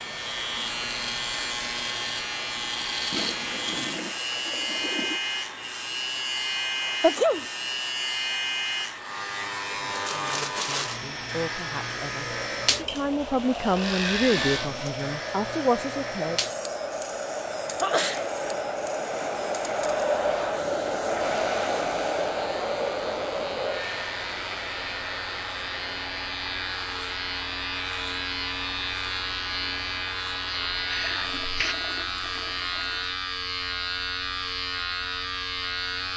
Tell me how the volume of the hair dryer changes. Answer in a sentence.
The loudness of the hair dryer goes up, then down.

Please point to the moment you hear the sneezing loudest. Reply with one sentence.
The loudest moment of the sneezing is at 7 seconds.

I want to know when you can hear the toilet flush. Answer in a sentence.
You can hear the toilet flush from 3.1 to 5.2 s, from 14.3 to 14.9 s and from 30.9 to 33.1 s.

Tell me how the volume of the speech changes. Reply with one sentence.
The volume of the speech goes up.